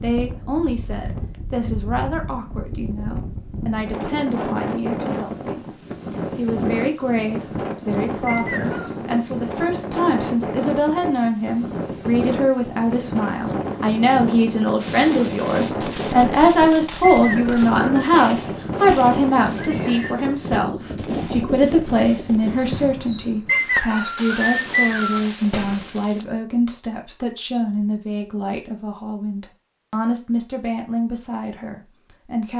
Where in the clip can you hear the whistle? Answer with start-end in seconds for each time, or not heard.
8.2-8.9, 17.0-18.1, 23.4-25.3.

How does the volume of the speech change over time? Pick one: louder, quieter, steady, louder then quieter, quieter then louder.
louder then quieter.